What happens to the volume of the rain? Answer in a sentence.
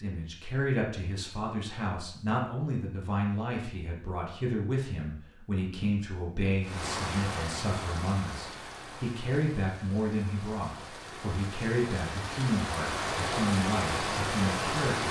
The volume of the rain goes down, then up.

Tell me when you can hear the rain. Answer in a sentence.
You can hear the rain from 6.6 to 15.0 s.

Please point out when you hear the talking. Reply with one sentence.
The talking can be heard from 0.0 to 15.0 s.